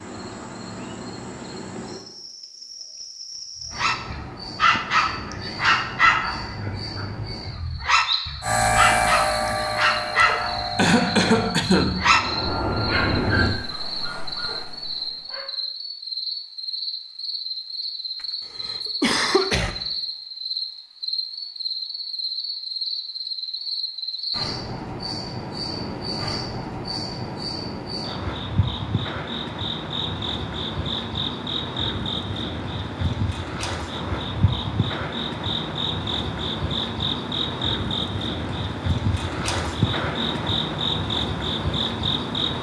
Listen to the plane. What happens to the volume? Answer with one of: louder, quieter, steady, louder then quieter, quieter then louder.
quieter then louder.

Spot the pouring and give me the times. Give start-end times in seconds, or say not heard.
not heard.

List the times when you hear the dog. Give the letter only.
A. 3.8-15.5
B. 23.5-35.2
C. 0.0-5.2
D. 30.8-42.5
A.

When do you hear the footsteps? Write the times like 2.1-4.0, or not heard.
not heard.